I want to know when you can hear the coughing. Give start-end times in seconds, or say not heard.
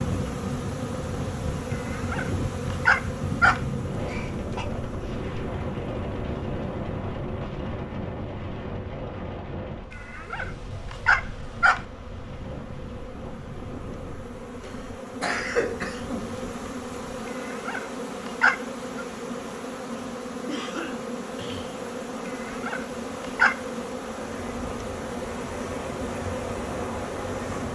3.9-4.7, 14.6-16.4, 20.4-21.9.